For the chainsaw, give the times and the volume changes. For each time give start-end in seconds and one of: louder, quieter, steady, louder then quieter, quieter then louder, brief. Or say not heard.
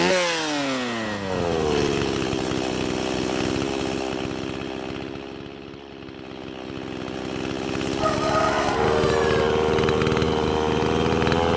0.0-11.5 quieter then louder.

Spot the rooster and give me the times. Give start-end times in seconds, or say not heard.
8.0-9.6.